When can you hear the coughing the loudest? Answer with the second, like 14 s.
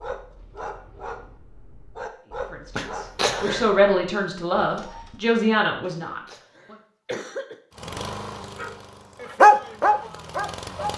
3 s.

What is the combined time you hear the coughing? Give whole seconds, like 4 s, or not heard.
3 s.